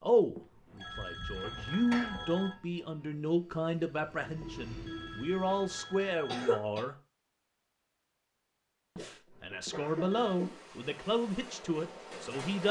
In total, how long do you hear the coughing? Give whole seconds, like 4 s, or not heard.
4 s.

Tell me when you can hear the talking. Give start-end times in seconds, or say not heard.
0.0-7.0, 8.9-12.6.